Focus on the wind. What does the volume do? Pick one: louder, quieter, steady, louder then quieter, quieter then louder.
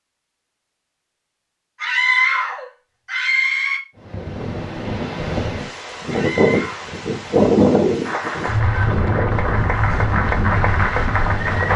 louder then quieter.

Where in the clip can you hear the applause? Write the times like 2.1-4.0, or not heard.
8.1-11.7.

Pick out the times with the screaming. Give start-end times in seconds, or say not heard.
1.8-3.8, 6.0-7.0.